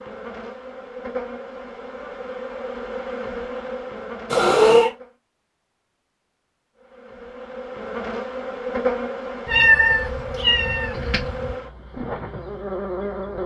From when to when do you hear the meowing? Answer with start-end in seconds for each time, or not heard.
4.3-4.9, 9.4-11.6.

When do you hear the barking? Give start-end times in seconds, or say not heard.
not heard.